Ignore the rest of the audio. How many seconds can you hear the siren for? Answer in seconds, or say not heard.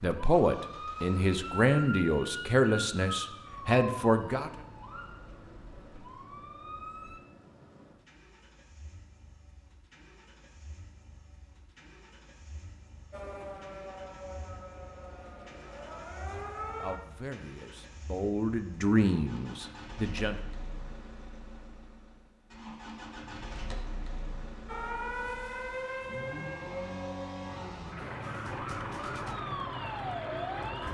17 s.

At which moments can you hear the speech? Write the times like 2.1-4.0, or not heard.
0.0-4.5, 16.3-20.4.